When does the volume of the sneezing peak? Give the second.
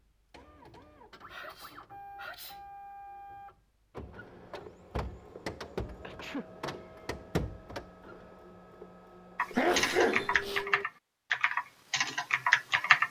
10 s.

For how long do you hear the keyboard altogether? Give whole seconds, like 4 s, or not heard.
4 s.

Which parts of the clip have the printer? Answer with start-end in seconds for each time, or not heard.
0.3-10.8.